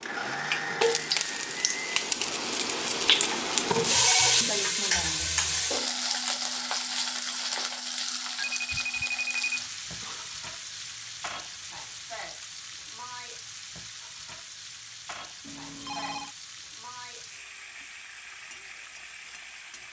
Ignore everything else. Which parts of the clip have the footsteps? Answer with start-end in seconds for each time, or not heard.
not heard.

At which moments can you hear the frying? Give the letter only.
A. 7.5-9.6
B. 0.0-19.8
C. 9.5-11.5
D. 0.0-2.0
B.